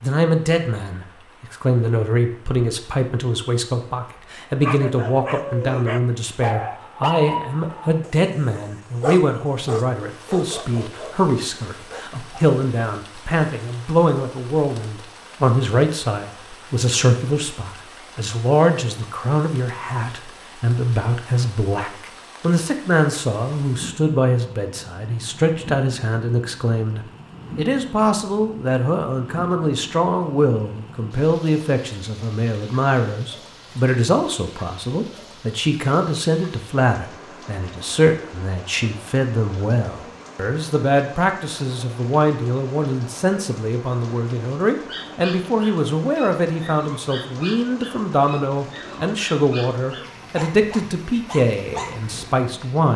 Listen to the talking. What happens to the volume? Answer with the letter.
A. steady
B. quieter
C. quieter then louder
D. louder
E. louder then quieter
A.